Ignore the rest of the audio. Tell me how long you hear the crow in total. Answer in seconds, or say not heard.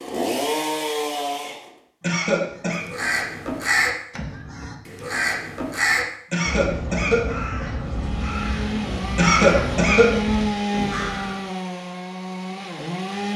9 s.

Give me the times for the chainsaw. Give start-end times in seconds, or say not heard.
0.0-1.8, 7.8-13.3.